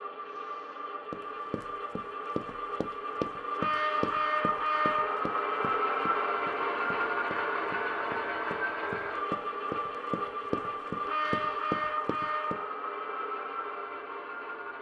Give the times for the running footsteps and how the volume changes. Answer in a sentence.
You can hear the running footsteps from 1.1 to 12.6 s, getting quieter then louder.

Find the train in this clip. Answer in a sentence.
The train can be heard from 0.0 to 14.7 s.